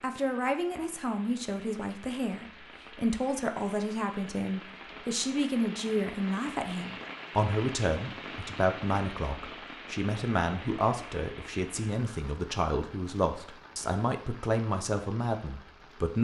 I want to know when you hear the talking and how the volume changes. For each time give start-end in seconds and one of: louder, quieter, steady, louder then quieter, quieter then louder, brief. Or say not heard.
0.0-16.1 steady.